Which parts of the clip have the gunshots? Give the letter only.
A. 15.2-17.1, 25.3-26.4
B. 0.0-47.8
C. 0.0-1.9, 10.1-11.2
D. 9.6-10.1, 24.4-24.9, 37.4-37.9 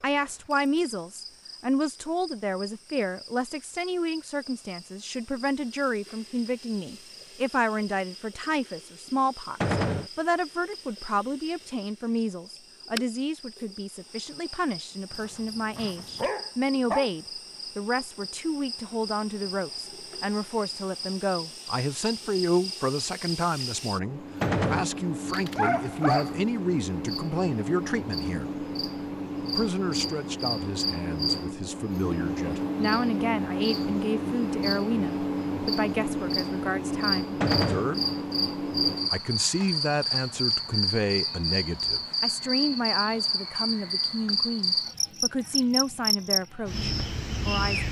D.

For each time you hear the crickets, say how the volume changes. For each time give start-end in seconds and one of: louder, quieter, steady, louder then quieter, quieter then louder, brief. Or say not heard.
0.0-47.8 louder.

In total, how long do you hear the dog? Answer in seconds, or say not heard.
3 s.